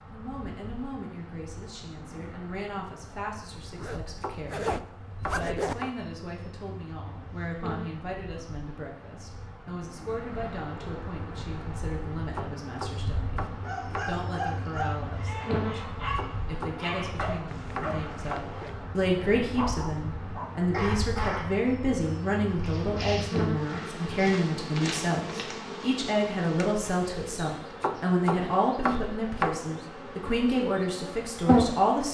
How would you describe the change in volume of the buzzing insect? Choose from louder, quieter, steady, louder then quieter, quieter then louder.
louder.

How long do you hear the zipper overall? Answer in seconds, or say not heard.
3 s.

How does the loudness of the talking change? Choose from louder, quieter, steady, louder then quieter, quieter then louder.
louder.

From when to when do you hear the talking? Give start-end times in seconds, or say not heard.
0.1-32.0.